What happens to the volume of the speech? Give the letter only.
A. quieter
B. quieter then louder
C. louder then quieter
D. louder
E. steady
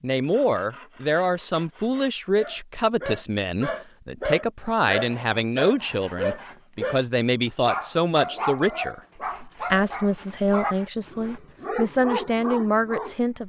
E.